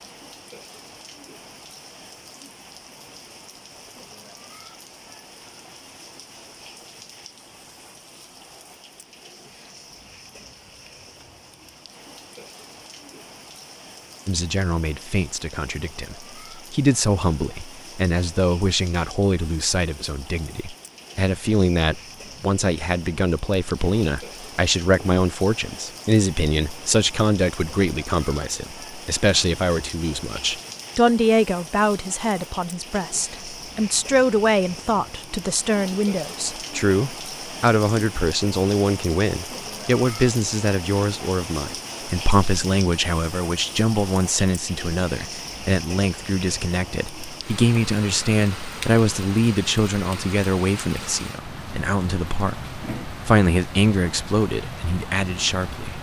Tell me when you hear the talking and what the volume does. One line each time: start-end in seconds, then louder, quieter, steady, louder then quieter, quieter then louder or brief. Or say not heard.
14.2-55.9 steady.